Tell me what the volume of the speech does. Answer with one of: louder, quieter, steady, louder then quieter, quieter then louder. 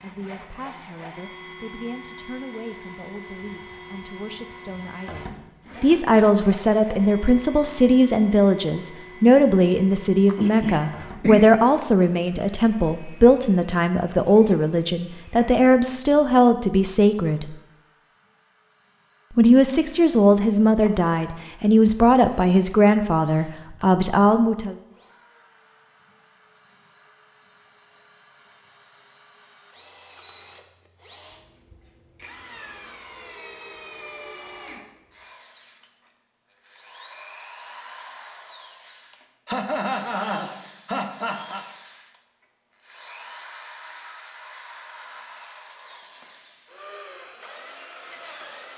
louder.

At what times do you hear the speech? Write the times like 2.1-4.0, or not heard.
0.0-17.6, 19.4-24.8.